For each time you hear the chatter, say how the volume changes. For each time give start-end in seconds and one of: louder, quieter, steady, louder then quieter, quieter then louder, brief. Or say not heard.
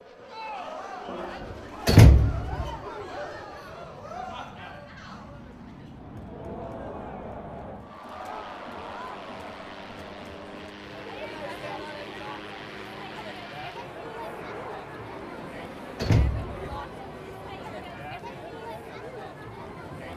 0.1-20.1 steady.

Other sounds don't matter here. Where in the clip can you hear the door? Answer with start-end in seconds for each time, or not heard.
1.9-2.7, 16.0-16.6.